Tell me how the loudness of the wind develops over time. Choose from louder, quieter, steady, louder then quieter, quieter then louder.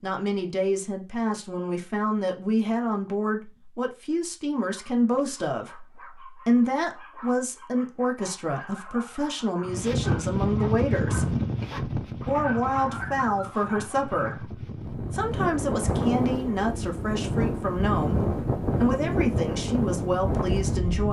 quieter then louder.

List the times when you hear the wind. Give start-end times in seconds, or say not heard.
9.7-21.0.